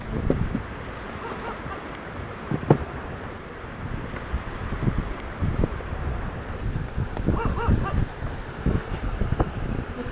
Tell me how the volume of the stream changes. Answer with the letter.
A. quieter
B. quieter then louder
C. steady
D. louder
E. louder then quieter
C.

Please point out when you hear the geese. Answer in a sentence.
You can't hear the geese here.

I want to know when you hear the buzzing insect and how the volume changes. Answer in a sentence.
You can hear the buzzing insect from 0.0 to 10.0 s, getting louder.